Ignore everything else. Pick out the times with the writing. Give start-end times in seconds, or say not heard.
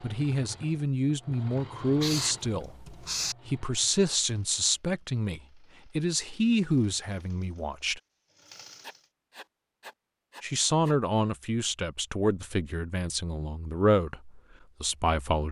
2.0-3.4, 8.8-10.9.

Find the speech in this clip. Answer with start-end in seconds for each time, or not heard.
0.0-8.0, 10.4-15.4.